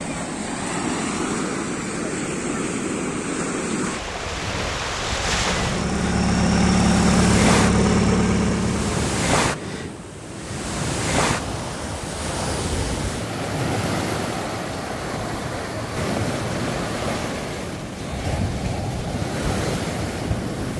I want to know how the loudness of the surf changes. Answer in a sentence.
The loudness of the surf stays about the same.